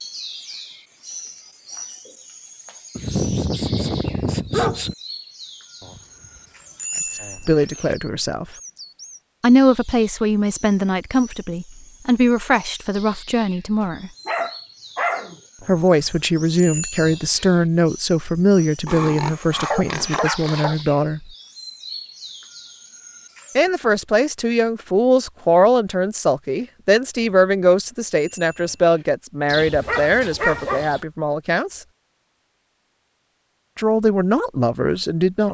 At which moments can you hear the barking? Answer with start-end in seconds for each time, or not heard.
3.0-5.0, 14.2-15.3, 18.9-20.8, 29.4-31.0.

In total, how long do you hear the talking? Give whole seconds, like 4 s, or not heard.
21 s.